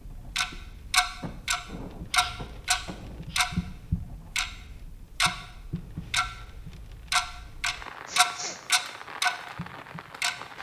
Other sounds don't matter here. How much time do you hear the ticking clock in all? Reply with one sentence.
The ticking clock can be heard for 10 seconds in total.